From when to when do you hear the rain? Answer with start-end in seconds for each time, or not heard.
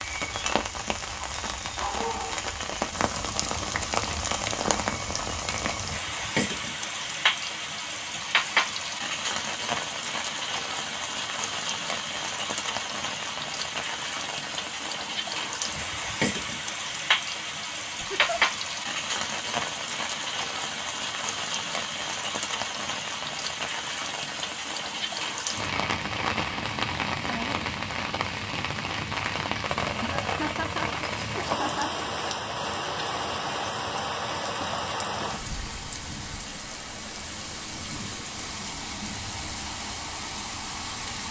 0.0-41.2.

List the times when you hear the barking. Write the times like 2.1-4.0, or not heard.
1.2-2.5.